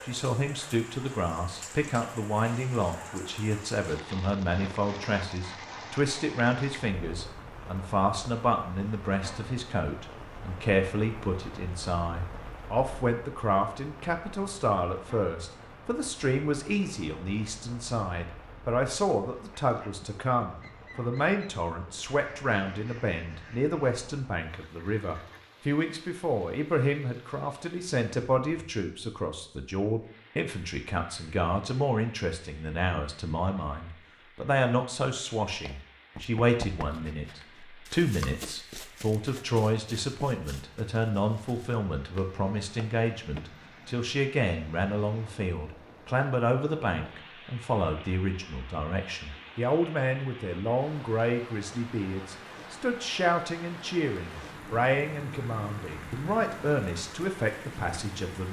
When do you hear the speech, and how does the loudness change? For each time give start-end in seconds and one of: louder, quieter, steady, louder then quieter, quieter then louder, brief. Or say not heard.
0.0-58.4 steady.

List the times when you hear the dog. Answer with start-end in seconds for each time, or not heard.
not heard.